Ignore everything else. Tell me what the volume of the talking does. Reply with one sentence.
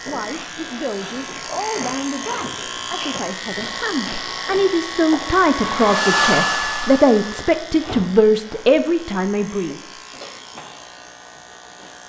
The volume of the talking goes up.